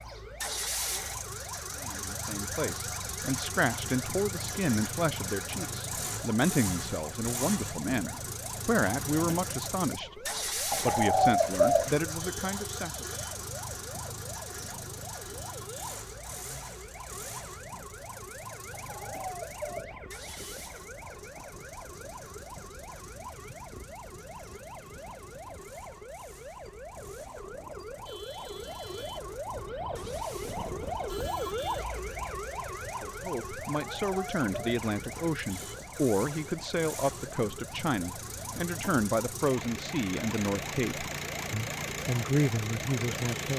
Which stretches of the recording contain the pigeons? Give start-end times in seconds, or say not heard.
10.7-11.9, 18.8-19.9, 33.6-34.9.